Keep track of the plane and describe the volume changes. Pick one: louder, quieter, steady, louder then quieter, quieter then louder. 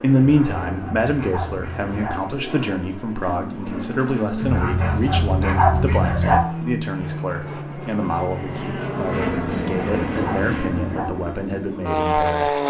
louder.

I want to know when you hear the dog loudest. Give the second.
6 s.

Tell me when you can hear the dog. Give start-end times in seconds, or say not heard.
0.4-2.1, 4.4-6.4, 9.1-11.1.